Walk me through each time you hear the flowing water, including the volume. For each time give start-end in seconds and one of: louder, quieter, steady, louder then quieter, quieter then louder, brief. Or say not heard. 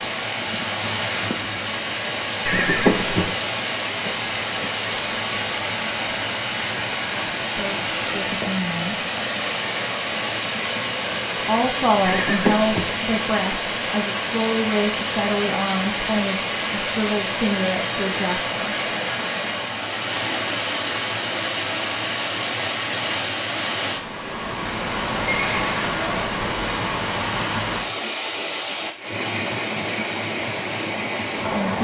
0.0-31.8 steady.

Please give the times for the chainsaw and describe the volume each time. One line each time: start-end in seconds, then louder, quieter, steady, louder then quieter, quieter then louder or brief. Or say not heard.
not heard.